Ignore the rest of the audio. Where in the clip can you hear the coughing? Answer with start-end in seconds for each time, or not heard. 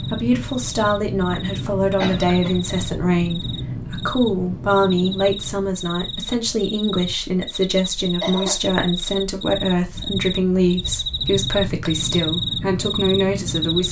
2.0-3.0, 8.0-8.6.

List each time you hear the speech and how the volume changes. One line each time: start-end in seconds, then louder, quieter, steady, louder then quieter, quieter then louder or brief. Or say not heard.
0.0-13.8 steady.